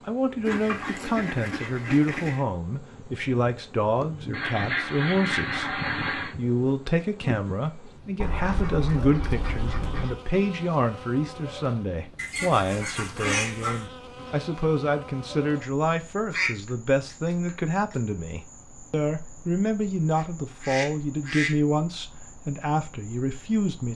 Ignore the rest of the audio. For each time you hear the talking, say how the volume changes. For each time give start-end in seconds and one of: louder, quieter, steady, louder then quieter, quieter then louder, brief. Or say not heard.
0.1-23.9 steady.